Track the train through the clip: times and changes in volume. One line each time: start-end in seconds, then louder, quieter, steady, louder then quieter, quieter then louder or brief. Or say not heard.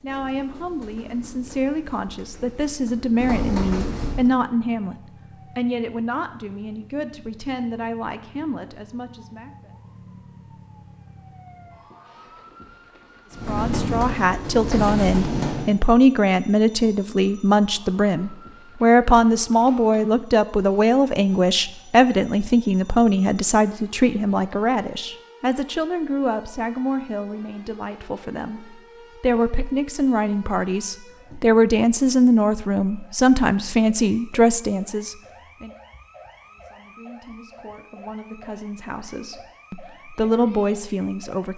0.0-4.3 louder
13.3-15.7 brief.